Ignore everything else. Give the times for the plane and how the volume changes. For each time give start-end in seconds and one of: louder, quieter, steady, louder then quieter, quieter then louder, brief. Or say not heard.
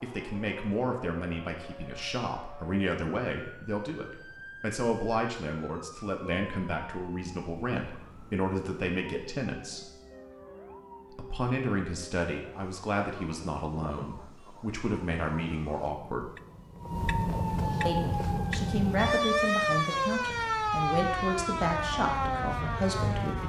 not heard.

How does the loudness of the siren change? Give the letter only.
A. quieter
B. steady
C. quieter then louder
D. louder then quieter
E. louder
E.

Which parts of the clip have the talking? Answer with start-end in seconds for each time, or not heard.
0.0-9.8, 11.2-16.3, 17.9-23.4.